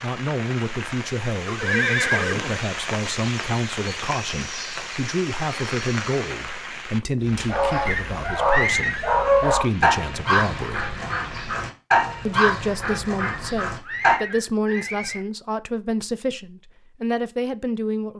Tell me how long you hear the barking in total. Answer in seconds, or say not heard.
7 s.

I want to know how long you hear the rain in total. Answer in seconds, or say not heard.
12 s.